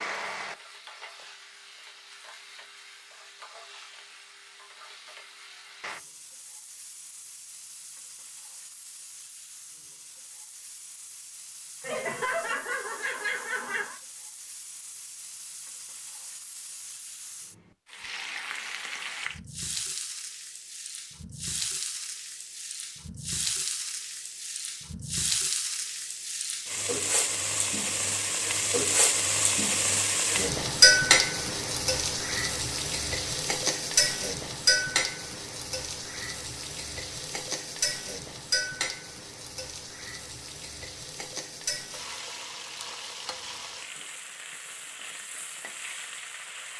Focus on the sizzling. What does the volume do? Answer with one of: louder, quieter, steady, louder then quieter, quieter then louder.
louder then quieter.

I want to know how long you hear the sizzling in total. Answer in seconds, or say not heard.
47 s.